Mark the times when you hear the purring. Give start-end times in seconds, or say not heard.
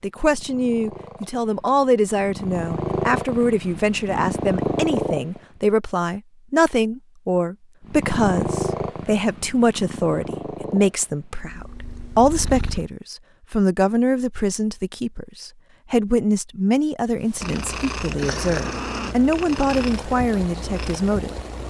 0.1-5.5, 7.8-12.9, 17.2-21.6.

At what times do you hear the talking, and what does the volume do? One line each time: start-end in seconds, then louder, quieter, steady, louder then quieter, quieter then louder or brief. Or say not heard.
0.0-21.6 steady.